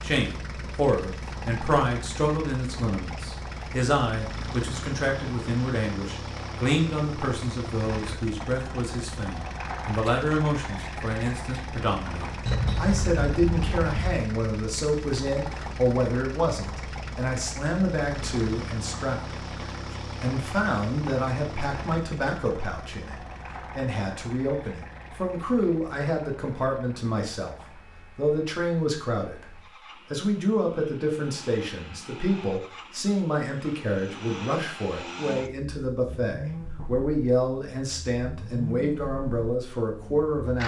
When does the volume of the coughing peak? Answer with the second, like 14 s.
13 s.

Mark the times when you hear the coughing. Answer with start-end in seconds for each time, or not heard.
12.4-14.2.